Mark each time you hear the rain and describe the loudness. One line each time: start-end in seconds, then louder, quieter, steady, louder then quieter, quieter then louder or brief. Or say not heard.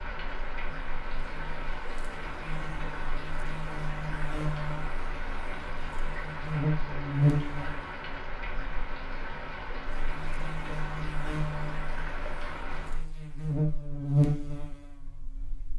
0.0-13.1 steady.